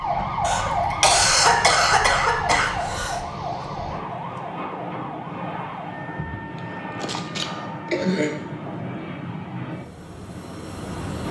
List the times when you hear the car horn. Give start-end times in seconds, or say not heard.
not heard.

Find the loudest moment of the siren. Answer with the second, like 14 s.
1 s.